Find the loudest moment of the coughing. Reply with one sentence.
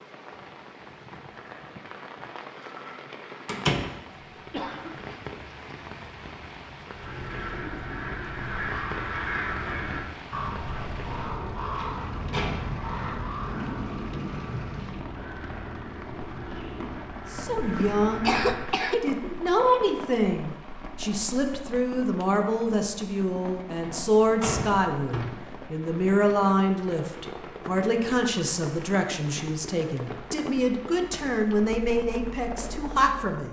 The volume of the coughing peaks at 18 seconds.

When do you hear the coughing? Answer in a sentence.
You can hear the coughing from 4.3 to 5.0 s and from 17.8 to 18.9 s.